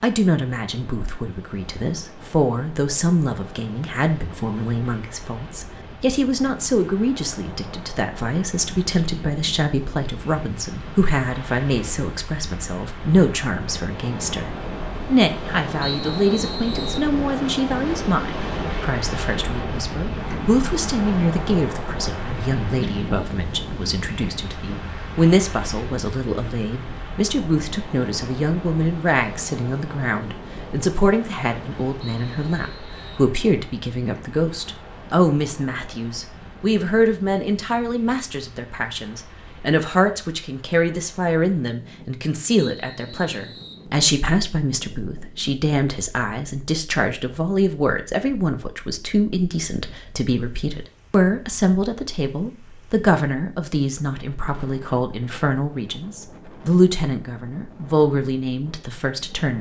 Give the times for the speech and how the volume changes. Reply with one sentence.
The speech can be heard from 0.0 to 59.5 s, at a steady volume.